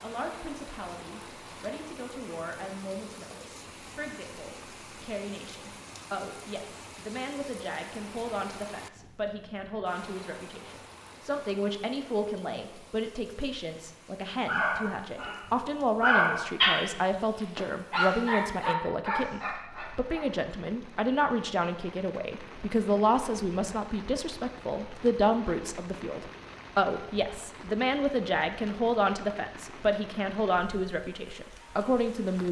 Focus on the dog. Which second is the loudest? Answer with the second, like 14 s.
16 s.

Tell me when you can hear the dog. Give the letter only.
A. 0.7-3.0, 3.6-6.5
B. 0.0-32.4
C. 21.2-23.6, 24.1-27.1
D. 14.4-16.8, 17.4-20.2
D.